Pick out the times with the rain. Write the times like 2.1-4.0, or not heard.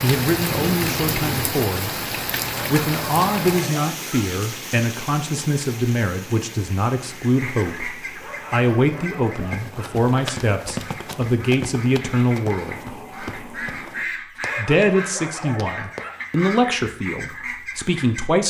0.0-14.1.